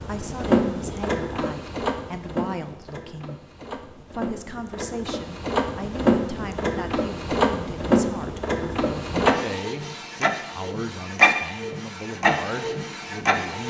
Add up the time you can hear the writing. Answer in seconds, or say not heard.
not heard.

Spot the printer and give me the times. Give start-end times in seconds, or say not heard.
0.0-13.6.